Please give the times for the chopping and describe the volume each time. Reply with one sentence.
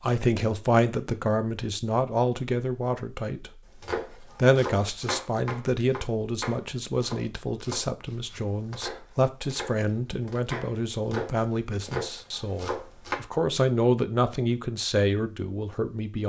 You can hear the chopping from 3.8 to 13.2 s, getting quieter then louder.